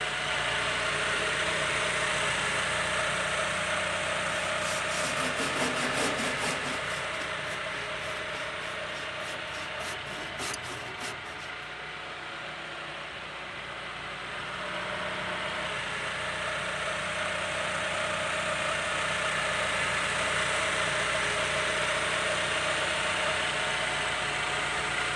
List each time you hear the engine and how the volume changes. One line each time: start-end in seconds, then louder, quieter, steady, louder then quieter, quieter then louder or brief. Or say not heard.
0.0-25.1 quieter then louder.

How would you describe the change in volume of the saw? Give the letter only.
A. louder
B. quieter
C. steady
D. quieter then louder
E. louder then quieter
D.